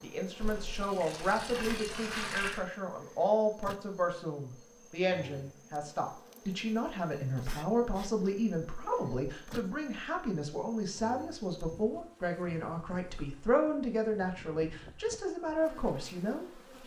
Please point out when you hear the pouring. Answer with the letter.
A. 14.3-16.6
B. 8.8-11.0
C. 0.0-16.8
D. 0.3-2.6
D.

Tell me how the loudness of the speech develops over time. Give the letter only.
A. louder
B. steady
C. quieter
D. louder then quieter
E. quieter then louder
B.